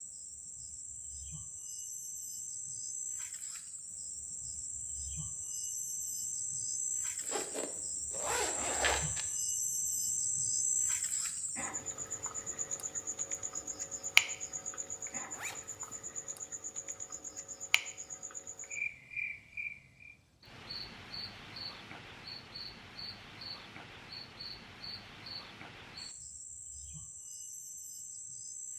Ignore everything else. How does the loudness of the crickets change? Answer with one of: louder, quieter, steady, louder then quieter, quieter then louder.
louder then quieter.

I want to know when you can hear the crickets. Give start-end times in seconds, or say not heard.
0.0-28.7.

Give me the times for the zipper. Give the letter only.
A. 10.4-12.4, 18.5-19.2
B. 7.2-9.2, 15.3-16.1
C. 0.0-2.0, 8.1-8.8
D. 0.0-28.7
B.